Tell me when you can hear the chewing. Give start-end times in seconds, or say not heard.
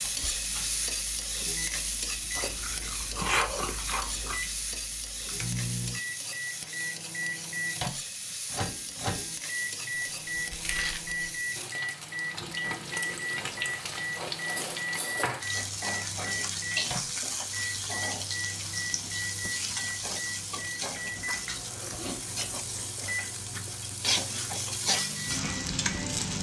2.4-4.3, 10.3-11.2, 20.9-22.9.